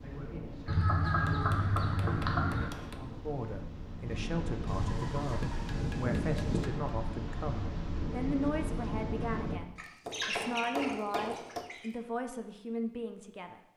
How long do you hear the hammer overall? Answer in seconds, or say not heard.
5 s.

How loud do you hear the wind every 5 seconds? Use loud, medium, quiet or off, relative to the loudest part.
medium, loud, off.